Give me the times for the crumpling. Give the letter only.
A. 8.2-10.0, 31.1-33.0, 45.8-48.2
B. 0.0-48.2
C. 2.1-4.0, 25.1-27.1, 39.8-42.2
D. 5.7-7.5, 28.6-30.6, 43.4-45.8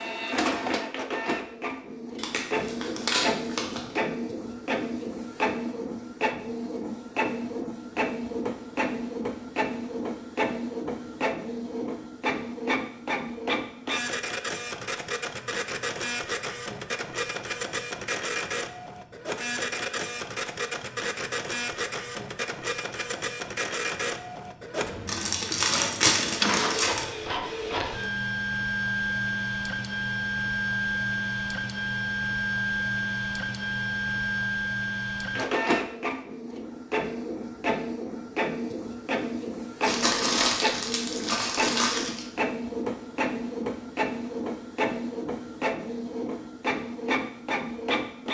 C.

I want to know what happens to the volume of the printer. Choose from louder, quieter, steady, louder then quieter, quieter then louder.
steady.